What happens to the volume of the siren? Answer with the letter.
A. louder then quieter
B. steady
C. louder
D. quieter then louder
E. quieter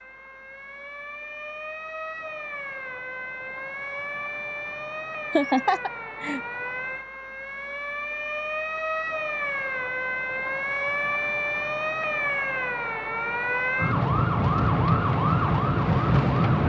C.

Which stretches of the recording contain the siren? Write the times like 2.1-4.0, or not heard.
0.0-16.6.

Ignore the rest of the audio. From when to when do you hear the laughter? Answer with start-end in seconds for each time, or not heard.
5.3-6.4.